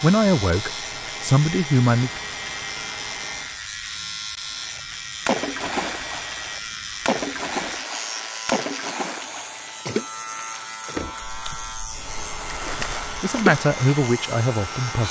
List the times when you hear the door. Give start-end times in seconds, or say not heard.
10.9-11.7.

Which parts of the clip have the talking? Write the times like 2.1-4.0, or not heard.
0.0-2.1, 12.8-15.0.